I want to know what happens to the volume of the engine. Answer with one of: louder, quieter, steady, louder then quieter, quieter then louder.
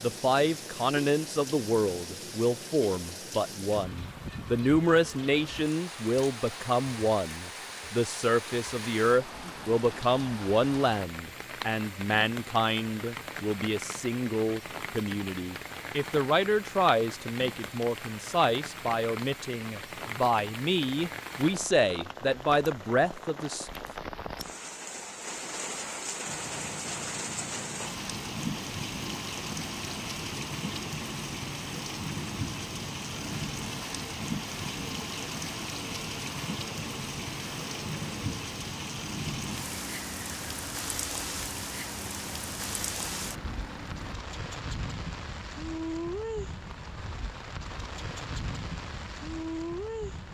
steady.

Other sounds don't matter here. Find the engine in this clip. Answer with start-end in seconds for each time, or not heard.
26.2-44.1.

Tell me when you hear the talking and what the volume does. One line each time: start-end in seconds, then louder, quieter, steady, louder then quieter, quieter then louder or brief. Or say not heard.
0.0-23.7 steady.